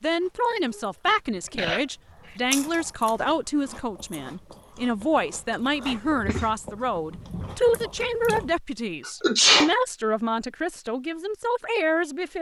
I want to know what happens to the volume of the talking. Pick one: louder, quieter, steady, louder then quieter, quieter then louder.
steady.